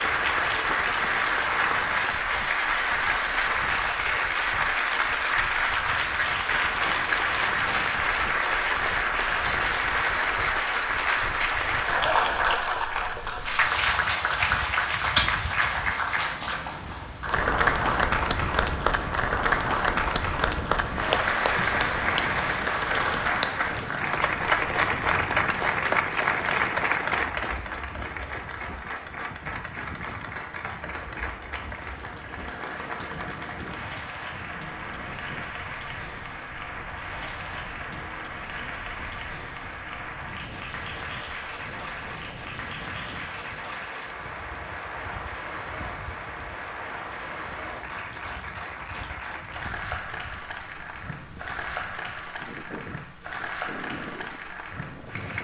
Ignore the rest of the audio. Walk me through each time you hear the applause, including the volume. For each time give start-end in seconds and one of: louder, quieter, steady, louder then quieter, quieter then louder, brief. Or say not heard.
0.0-55.4 quieter.